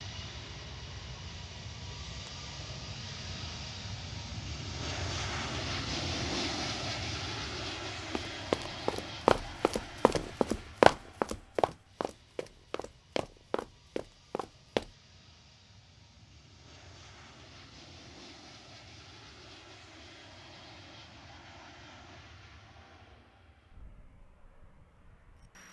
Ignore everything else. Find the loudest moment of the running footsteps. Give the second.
11 s.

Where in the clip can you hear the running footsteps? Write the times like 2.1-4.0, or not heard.
8.2-14.9.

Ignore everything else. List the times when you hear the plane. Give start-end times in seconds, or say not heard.
0.0-25.6.